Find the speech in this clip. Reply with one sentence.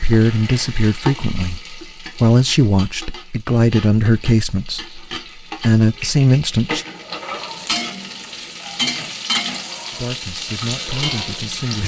You can hear the speech from 0.0 to 6.8 s and from 9.9 to 11.8 s.